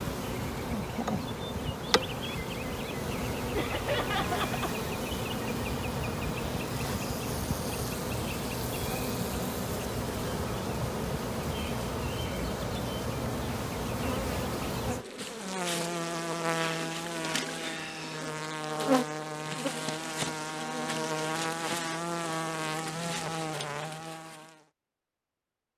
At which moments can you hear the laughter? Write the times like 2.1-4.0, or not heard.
3.5-4.8.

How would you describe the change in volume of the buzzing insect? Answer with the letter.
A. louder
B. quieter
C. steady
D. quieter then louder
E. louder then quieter
C.